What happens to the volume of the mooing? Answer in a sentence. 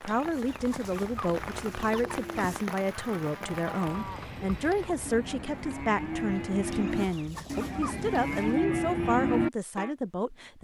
The volume of the mooing goes up.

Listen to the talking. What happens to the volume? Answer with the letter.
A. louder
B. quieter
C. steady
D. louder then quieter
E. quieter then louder
C.